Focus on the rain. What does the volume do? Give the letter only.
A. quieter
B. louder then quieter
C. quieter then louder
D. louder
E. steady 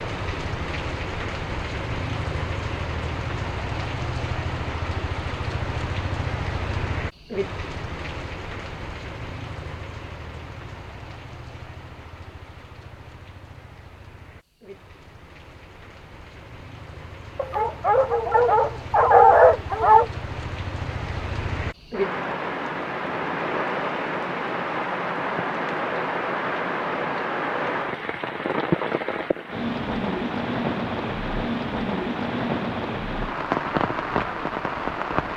C.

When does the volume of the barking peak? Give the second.
19 s.